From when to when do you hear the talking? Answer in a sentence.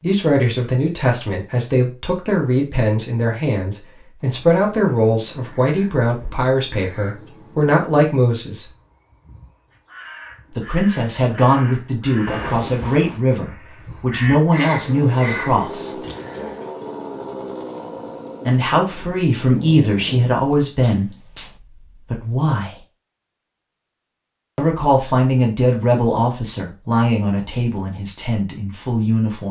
You can hear the talking from 0.0 to 8.7 s, from 10.6 to 16.0 s, from 18.4 to 21.1 s, from 22.1 to 22.8 s and from 24.6 to 29.4 s.